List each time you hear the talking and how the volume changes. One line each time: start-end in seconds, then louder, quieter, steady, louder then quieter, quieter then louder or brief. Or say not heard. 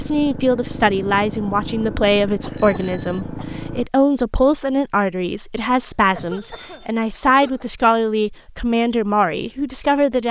0.0-10.2 steady.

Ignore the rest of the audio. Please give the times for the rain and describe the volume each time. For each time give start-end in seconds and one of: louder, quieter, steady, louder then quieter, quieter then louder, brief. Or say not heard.
not heard.